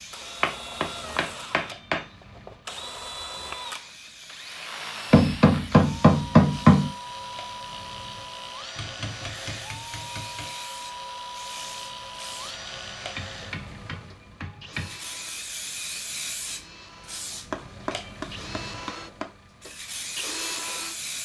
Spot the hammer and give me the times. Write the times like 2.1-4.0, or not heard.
0.4-2.0, 5.1-6.9, 8.8-10.5, 13.2-14.9, 17.5-19.2.